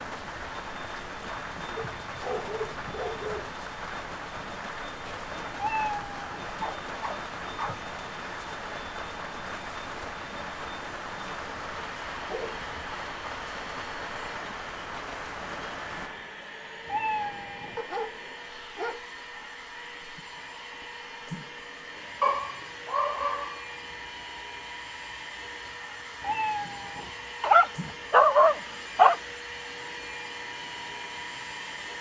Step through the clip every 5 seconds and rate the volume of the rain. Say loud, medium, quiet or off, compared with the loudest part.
loud, loud, loud, medium, quiet, quiet, quiet.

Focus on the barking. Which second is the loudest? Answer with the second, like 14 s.
28 s.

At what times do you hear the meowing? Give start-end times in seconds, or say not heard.
5.5-6.5, 16.9-17.8, 26.2-27.1.